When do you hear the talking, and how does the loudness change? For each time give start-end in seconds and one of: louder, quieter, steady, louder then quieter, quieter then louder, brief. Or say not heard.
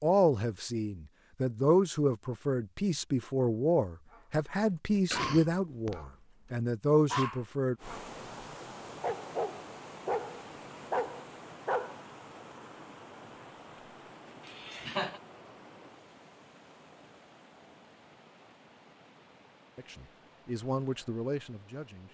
0.0-7.8 steady
19.8-22.0 brief.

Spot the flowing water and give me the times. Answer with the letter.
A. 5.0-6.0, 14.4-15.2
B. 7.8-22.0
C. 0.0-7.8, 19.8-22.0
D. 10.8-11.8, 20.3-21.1
B.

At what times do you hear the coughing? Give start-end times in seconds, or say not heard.
5.0-6.0, 14.4-15.2.